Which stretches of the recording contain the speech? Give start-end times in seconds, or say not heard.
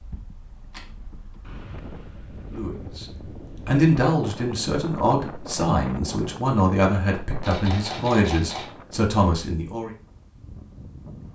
2.5-9.9.